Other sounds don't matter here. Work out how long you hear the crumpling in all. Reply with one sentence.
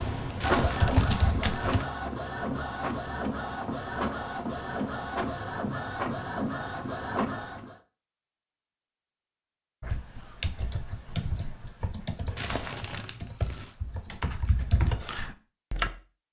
The crumpling can be heard for 3 seconds in total.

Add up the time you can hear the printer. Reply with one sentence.
You can hear the printer for 8 seconds altogether.